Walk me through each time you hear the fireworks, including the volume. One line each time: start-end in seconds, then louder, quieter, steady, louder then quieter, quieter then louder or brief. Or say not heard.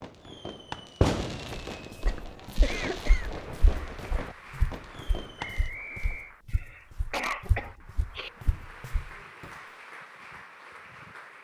0.0-5.7 quieter.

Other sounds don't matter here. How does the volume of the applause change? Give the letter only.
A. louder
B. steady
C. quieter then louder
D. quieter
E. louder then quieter
C.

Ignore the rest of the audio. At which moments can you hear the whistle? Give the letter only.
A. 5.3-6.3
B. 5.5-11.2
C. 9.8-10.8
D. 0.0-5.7
A.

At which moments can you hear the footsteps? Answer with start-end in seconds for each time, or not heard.
1.7-9.5.